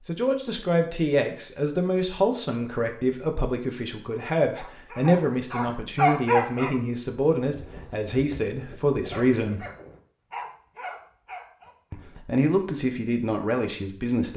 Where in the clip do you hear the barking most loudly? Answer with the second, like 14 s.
6 s.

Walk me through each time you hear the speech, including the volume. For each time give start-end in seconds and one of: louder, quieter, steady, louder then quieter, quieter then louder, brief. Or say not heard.
0.1-9.7 steady
11.9-14.3 brief.